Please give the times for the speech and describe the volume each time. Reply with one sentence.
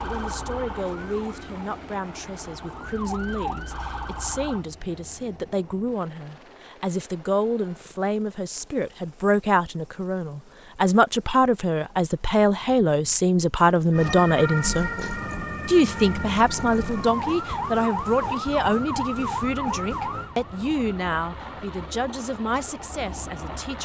You can hear the speech from 0.0 to 23.7 s, getting louder then quieter.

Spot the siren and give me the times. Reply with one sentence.
The siren can be heard from 0.0 to 4.7 s and from 13.9 to 23.7 s.